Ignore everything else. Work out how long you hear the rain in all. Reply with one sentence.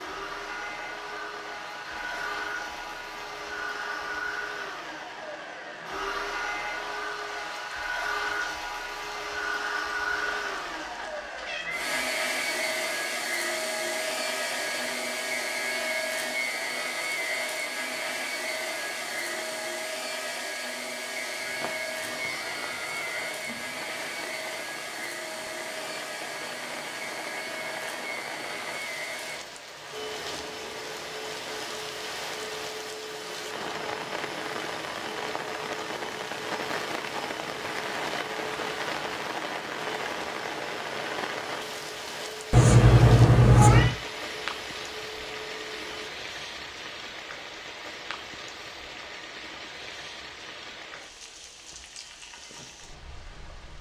The rain can be heard for 54 seconds in total.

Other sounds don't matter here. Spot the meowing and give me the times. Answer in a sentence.
You can hear the meowing from 10.1 to 11.9 s, from 21.4 to 23.6 s and from 42.5 to 44.0 s.